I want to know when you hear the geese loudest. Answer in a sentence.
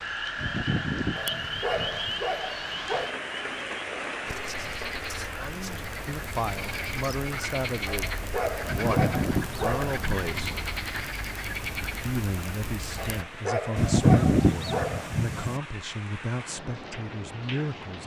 The loudest moment of the geese is at 14 seconds.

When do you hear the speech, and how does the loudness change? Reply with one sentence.
The speech can be heard from 5.3 to 10.6 s, at a steady volume; and from 12.1 to 18.0 s, at a steady volume.